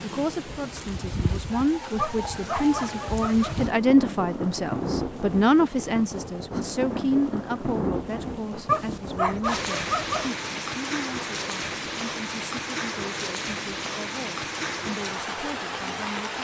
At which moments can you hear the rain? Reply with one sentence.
You can hear the rain from 0.0 to 16.3 s.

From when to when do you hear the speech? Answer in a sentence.
The speech can be heard from 0.0 to 16.3 s.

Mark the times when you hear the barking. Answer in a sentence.
The barking can be heard from 1.9 to 3.6 s and from 8.7 to 10.3 s.